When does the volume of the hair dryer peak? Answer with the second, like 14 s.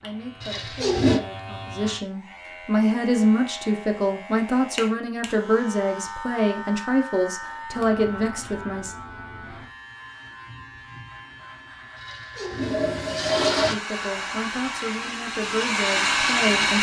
16 s.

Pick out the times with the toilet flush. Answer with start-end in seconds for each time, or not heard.
0.4-1.2, 12.0-13.8.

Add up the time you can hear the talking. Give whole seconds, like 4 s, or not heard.
12 s.